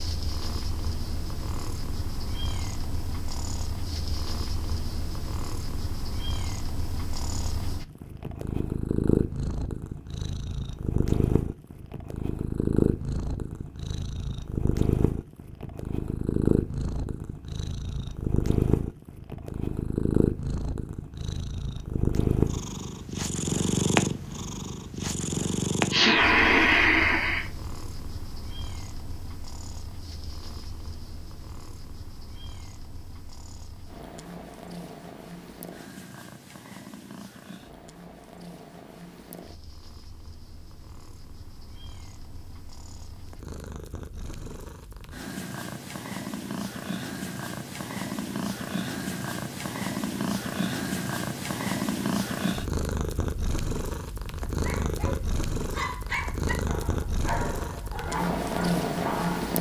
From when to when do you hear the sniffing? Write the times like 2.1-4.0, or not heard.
25.9-27.4.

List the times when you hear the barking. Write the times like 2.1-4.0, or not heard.
54.6-59.5.